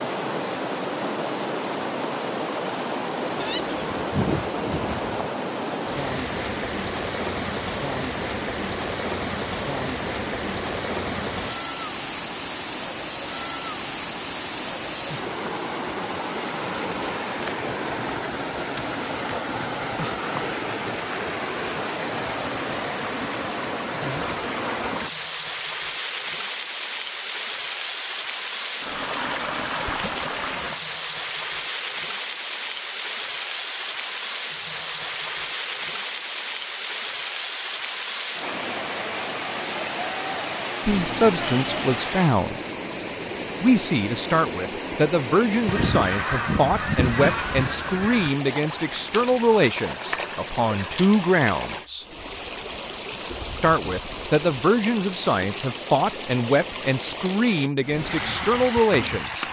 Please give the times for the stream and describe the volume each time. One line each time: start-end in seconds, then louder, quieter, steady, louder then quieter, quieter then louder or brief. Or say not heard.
0.0-59.4 steady.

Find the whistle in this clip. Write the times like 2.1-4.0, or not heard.
not heard.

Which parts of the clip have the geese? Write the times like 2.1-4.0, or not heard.
3.4-5.2, 45.6-48.4.